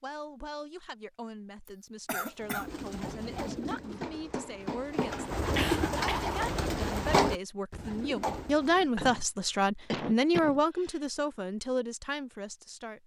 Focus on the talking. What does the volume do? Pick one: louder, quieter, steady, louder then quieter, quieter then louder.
louder then quieter.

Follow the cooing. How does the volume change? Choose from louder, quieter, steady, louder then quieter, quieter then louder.
louder then quieter.